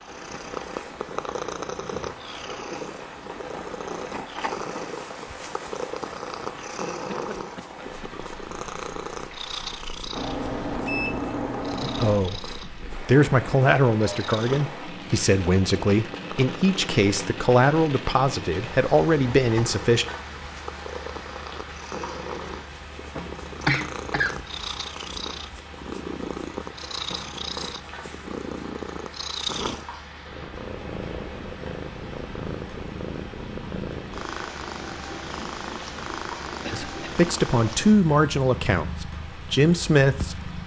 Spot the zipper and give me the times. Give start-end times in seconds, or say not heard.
not heard.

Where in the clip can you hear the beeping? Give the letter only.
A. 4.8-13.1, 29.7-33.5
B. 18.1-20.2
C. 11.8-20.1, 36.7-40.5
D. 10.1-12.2
D.